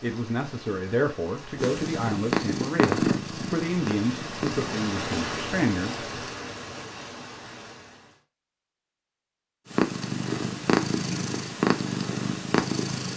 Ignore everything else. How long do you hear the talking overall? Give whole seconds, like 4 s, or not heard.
6 s.